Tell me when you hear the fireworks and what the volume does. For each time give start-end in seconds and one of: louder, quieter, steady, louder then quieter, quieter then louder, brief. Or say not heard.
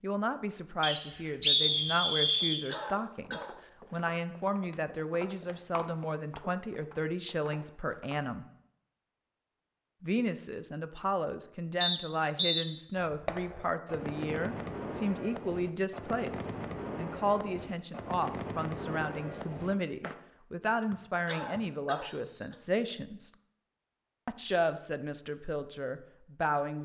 13.0-20.1 steady.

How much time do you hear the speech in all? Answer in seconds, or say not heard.
24 s.